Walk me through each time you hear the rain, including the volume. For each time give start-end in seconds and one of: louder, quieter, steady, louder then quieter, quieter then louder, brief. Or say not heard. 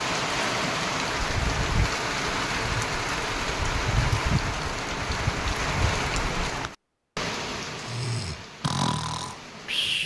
0.0-10.0 quieter.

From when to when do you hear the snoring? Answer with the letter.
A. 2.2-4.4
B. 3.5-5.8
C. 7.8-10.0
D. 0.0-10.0
C.